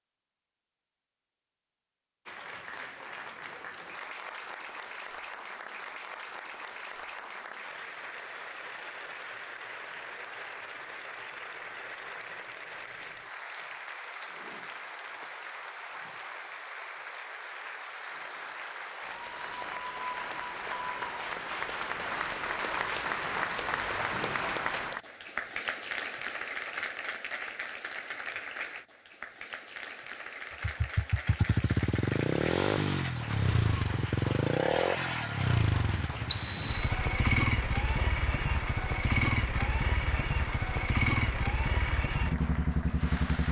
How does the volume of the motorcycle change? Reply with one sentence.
The volume of the motorcycle stays about the same.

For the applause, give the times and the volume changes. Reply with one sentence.
The applause can be heard from 2.2 to 43.4 s, getting louder then quieter.